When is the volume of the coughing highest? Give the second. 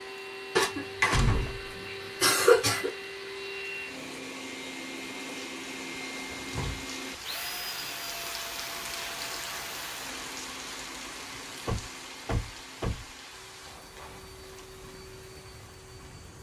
2 s.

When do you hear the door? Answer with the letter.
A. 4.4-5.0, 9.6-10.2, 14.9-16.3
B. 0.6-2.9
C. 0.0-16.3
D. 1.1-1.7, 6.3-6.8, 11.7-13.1
D.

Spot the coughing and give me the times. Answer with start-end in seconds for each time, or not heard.
0.6-2.9.